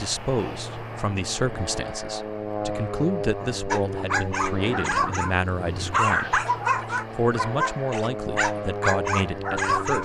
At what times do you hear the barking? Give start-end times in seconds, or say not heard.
3.7-10.0.